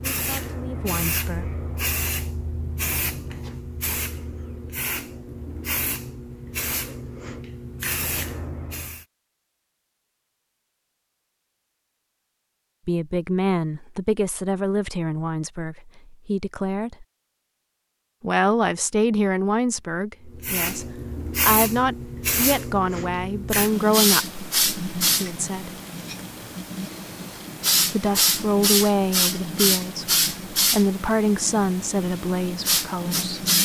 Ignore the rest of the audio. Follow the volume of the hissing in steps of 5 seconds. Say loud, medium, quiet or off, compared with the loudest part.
medium, medium, off, off, loud, loud, loud.